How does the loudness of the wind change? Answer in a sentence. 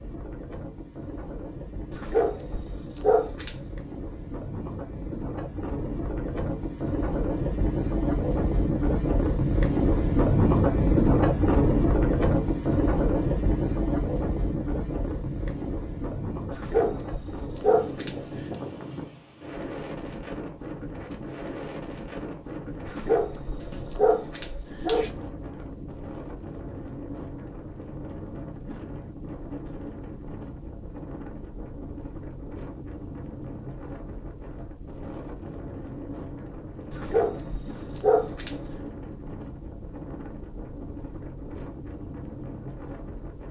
The loudness of the wind goes up, then down.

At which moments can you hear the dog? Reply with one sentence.
The dog can be heard from 1.9 to 3.5 s, from 16.5 to 18.6 s, from 22.9 to 25.1 s and from 36.9 to 38.5 s.